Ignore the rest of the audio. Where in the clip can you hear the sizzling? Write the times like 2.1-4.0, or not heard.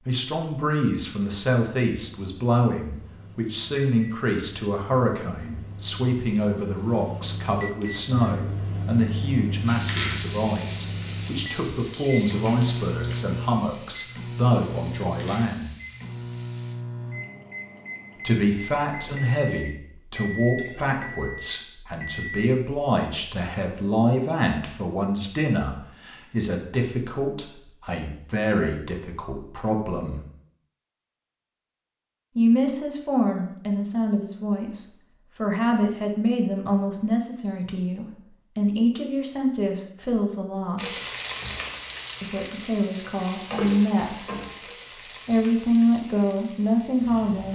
9.7-16.8, 40.8-47.5.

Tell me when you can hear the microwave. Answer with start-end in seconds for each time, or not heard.
2.1-22.5.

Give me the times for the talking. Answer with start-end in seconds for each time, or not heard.
0.1-15.7, 18.2-30.2, 32.4-41.0, 42.2-44.4, 45.0-47.5.